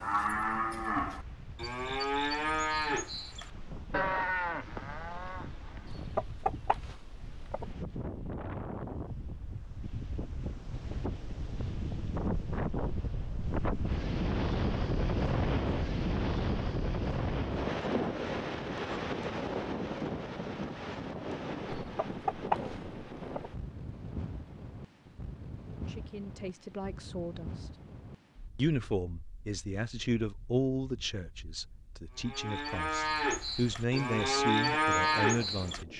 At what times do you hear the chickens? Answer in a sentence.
The chickens can be heard from 5.8 to 7.8 s and from 21.8 to 23.6 s.